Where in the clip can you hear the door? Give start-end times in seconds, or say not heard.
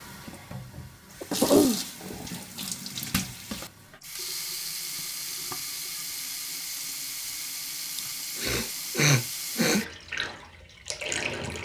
not heard.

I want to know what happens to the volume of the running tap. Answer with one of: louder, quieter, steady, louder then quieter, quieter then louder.
steady.